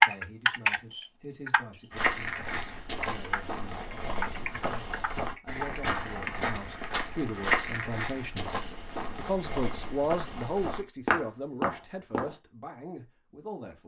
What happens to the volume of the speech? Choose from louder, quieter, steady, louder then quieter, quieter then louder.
louder then quieter.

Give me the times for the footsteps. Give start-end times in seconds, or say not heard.
1.9-12.3.